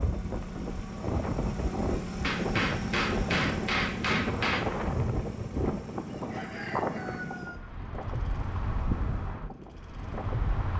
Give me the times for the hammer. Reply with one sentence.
The hammer can be heard from 2.2 to 4.7 s.